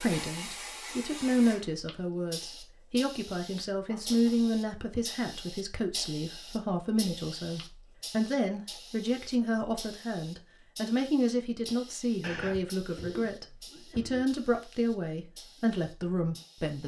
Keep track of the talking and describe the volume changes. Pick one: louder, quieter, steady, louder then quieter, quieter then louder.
steady.